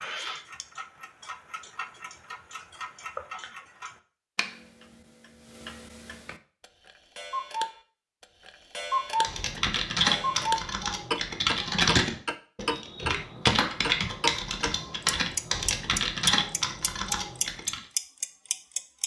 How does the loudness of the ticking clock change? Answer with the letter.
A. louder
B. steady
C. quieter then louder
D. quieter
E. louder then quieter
A.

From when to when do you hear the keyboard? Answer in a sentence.
You can hear the keyboard from 9.2 to 17.8 s.